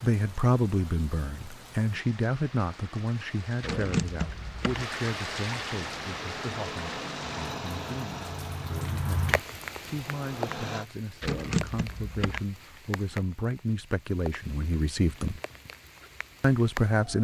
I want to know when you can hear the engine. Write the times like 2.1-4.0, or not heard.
5.8-10.8.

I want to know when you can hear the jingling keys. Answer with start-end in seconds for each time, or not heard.
3.6-4.8, 11.2-12.4.